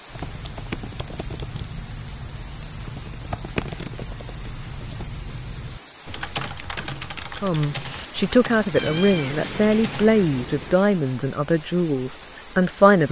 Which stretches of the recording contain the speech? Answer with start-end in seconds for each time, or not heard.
7.3-13.0.